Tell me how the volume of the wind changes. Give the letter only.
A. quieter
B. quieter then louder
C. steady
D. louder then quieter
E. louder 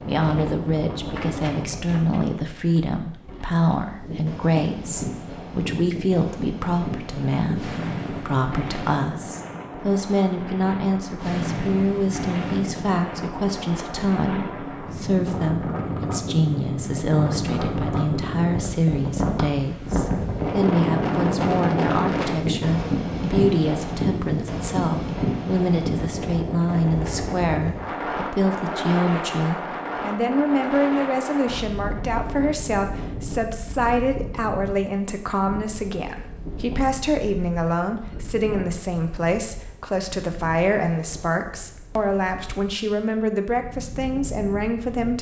D.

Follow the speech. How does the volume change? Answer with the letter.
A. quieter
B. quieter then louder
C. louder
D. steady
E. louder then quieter
D.